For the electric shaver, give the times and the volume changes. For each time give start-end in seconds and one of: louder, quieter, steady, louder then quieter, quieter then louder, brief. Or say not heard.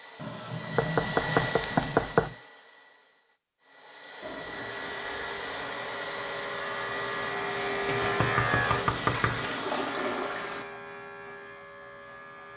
4.5-12.5 louder then quieter.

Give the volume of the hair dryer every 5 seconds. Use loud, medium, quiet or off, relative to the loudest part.
loud, loud, off.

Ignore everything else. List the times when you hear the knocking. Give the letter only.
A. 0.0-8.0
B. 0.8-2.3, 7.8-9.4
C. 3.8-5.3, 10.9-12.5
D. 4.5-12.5
B.